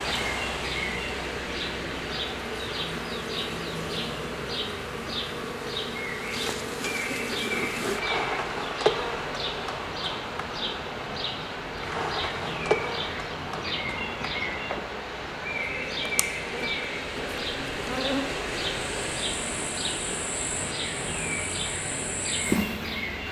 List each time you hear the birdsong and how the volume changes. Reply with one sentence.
The birdsong can be heard from 0.0 to 23.2 s, at a steady volume.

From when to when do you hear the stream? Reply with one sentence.
The stream can be heard from 0.0 to 23.2 s.